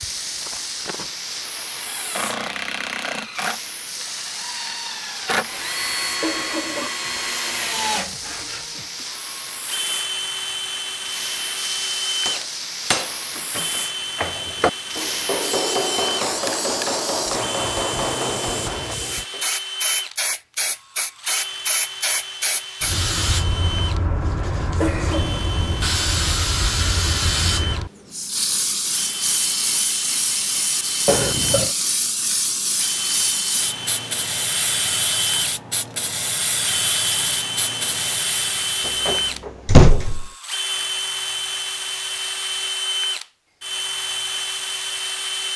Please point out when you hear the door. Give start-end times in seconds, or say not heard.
38.9-40.3.